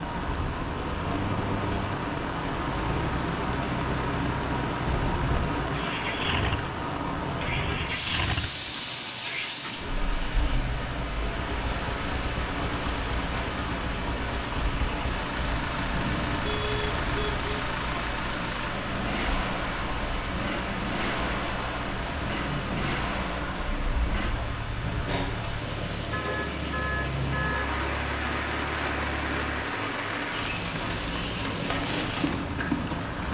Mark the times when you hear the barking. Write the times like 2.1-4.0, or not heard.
not heard.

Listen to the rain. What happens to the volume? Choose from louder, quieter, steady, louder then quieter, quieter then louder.
steady.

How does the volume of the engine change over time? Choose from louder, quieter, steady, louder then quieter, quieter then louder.
steady.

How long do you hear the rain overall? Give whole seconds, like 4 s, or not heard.
33 s.